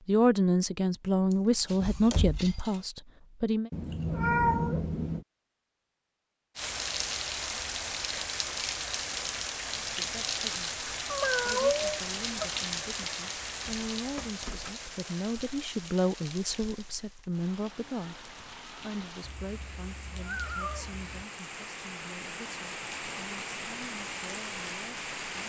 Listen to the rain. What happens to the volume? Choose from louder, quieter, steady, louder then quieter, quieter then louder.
quieter then louder.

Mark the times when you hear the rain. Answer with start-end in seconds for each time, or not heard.
6.5-25.4.